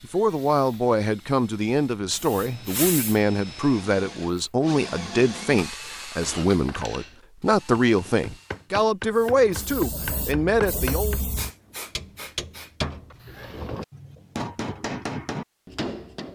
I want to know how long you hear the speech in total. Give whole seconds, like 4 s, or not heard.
11 s.